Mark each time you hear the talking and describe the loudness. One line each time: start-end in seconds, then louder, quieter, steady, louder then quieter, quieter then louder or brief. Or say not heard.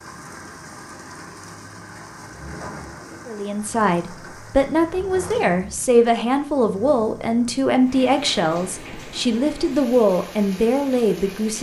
3.2-11.5 steady.